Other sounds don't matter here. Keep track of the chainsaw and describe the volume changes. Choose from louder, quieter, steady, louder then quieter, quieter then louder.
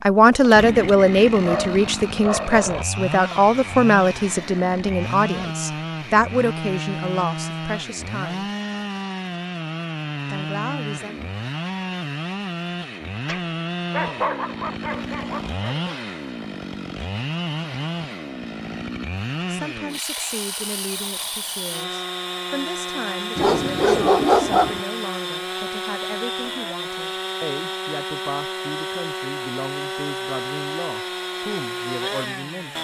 steady.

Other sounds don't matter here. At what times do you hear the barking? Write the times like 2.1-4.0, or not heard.
1.3-2.9, 13.2-15.9, 23.4-24.8.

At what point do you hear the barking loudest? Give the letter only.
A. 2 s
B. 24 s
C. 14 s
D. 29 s
B.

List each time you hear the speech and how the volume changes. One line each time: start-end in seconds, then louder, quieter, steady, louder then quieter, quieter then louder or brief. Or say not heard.
0.0-8.5 quieter
10.2-11.3 brief
19.5-32.7 steady.